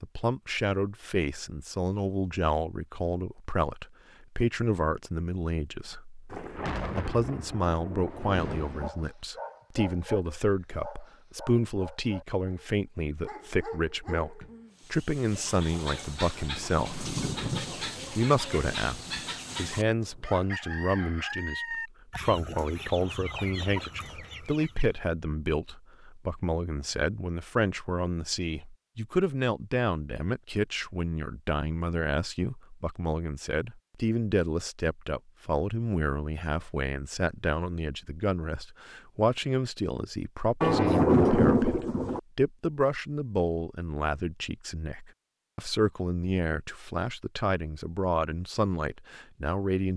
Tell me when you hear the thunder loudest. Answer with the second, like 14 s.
41 s.